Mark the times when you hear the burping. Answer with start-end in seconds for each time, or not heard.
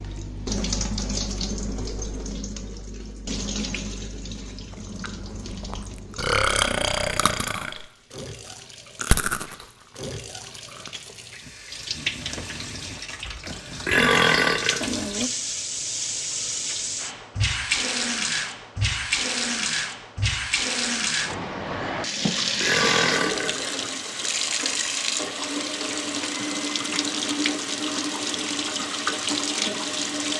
6.2-7.8, 13.4-14.9, 22.2-23.6.